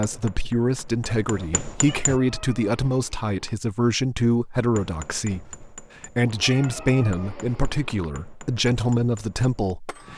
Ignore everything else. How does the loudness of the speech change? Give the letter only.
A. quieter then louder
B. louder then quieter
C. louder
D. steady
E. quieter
D.